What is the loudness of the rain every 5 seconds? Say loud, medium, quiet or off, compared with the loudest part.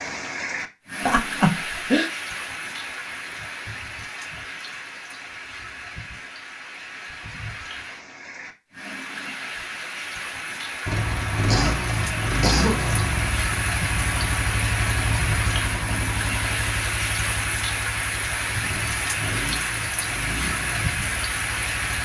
medium, medium, loud, loud, loud.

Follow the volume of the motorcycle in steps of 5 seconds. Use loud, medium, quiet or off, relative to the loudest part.
off, off, loud, medium, medium.